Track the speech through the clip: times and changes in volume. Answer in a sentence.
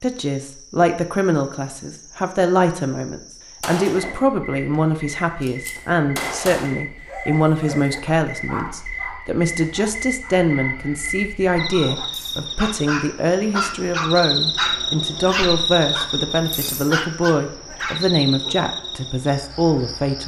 You can hear the speech from 0.0 to 20.2 s, at a steady volume.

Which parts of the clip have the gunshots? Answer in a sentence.
You can hear the gunshots from 3.6 to 4.2 s and from 5.4 to 6.8 s.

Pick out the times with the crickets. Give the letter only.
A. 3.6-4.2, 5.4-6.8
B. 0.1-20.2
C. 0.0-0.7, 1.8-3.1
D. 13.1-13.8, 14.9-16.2
B.